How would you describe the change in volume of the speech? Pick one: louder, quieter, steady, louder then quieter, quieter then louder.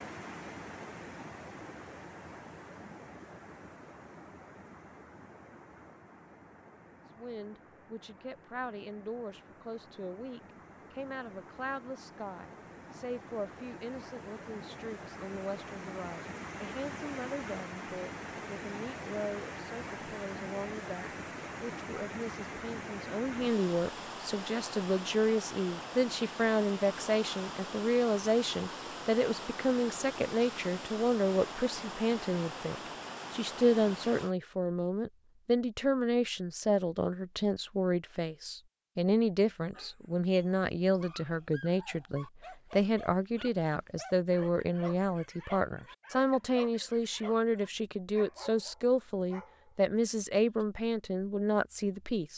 louder.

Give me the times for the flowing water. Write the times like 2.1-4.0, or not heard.
0.0-34.4.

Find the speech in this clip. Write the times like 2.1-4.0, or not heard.
7.2-52.3.